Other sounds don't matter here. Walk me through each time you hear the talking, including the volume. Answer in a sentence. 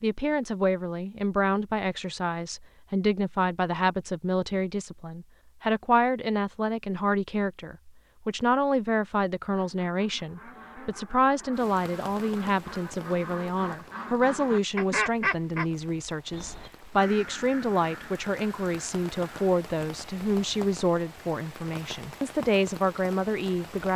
The talking can be heard from 0.0 to 23.9 s, at a steady volume.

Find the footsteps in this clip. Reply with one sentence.
The footsteps can't be heard in this clip.